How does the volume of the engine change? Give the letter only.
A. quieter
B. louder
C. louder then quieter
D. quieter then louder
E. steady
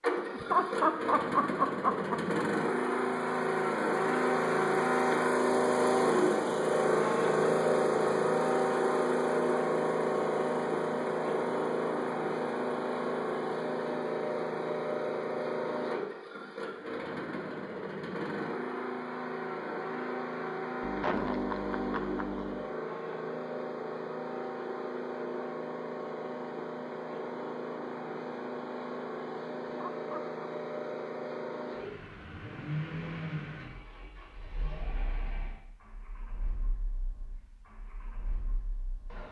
A.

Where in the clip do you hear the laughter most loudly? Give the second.
1 s.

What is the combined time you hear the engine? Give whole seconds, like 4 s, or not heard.
39 s.